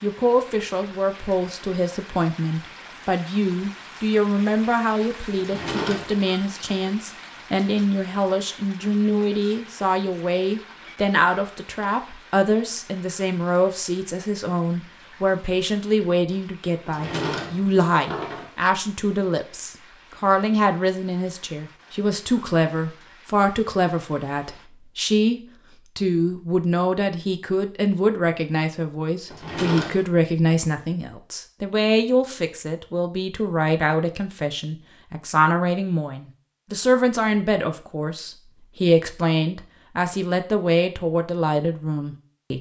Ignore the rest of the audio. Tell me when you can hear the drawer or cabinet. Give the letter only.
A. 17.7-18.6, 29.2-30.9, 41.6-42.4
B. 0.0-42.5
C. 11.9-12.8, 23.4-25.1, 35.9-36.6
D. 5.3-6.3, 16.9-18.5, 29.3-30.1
D.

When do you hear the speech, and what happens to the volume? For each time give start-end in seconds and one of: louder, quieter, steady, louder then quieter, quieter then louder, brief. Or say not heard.
0.0-42.5 steady.